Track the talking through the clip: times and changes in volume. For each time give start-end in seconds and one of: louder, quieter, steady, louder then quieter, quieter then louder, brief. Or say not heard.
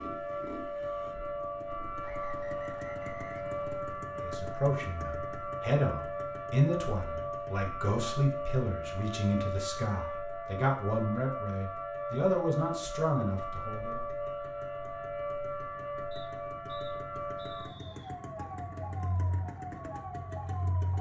4.2-14.1 steady.